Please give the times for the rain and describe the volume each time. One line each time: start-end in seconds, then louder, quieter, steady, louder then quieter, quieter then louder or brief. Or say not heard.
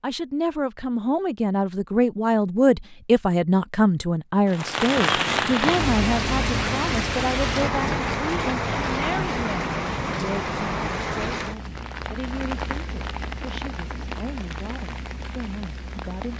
4.5-16.3 quieter.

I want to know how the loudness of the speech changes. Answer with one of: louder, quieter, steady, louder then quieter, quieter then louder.
quieter.